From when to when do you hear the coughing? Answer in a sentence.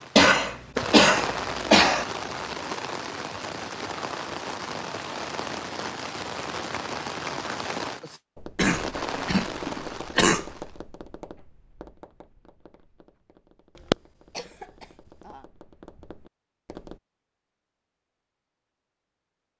The coughing can be heard from 0.1 to 2.0 s, from 8.6 to 10.4 s and from 13.9 to 14.7 s.